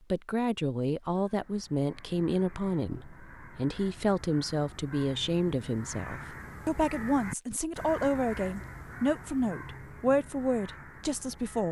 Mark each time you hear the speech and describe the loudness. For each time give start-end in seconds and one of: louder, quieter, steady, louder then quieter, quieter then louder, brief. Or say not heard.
0.1-11.6 steady.